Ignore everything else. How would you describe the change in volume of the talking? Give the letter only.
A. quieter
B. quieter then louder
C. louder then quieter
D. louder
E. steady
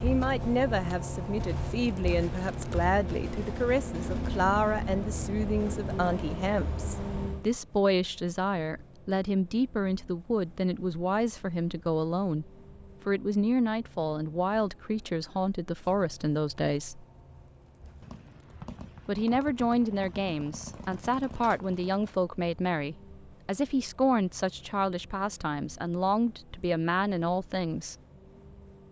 E.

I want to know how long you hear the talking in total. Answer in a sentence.
The talking can be heard for 26 seconds in total.